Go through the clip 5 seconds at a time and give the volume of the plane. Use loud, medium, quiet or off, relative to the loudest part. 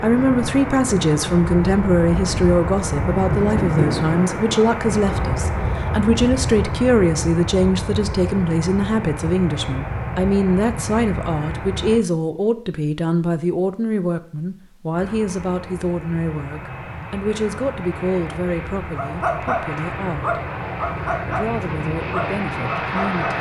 loud, loud, medium, medium, loud.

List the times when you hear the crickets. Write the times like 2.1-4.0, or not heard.
not heard.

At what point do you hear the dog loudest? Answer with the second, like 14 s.
19 s.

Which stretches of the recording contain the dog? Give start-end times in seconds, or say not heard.
18.9-21.5, 22.1-23.3.